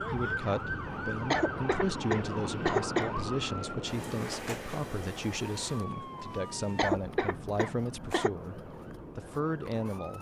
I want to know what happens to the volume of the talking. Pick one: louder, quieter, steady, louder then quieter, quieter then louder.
steady.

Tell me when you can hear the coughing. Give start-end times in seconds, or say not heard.
1.3-3.1, 6.8-8.3.